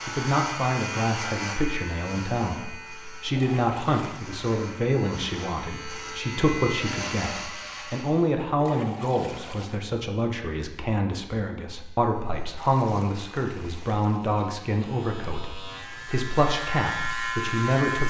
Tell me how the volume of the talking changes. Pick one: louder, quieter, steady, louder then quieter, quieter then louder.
steady.